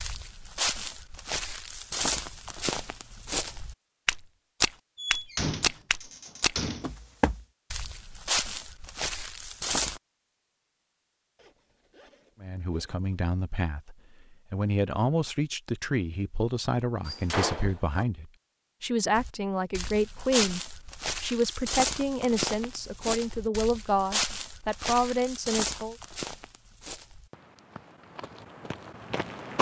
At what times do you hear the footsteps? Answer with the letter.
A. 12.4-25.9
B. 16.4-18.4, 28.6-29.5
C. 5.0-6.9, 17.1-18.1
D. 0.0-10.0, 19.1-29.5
D.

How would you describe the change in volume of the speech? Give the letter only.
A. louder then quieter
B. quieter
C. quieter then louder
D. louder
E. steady
E.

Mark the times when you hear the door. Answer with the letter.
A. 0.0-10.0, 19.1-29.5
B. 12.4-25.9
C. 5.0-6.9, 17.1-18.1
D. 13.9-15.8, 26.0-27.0
C.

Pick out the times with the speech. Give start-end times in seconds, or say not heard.
12.4-25.9.